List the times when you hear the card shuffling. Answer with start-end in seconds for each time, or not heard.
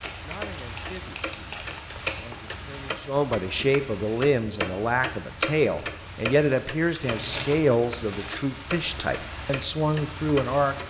0.0-2.3, 7.0-9.1.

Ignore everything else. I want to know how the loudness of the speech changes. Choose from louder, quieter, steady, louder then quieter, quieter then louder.
louder.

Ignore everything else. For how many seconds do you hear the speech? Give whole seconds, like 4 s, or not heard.
11 s.